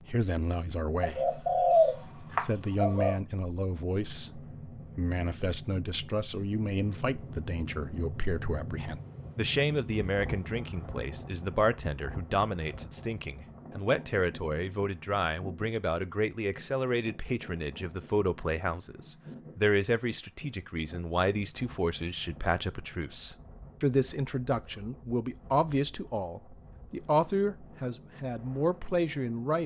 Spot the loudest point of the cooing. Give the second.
2 s.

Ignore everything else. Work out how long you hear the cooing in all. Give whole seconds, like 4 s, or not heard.
2 s.